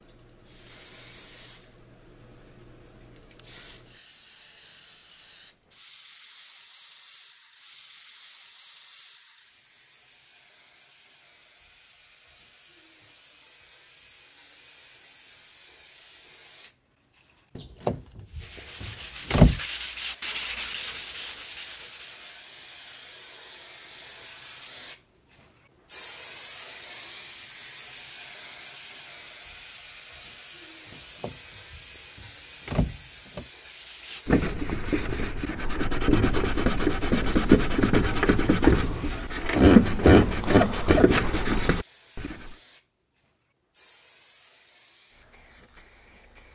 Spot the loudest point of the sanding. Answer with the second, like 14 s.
40 s.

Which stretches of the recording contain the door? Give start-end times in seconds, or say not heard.
17.6-19.6, 30.9-33.5.